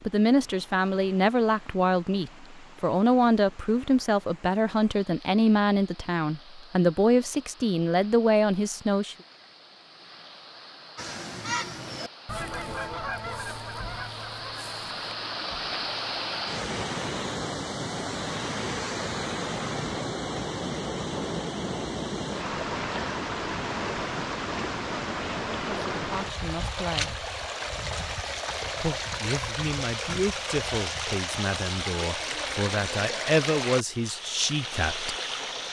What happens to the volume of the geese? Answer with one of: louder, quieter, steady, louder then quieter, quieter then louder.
quieter.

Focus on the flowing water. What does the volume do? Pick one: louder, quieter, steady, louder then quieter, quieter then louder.
louder.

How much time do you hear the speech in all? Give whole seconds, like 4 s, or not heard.
17 s.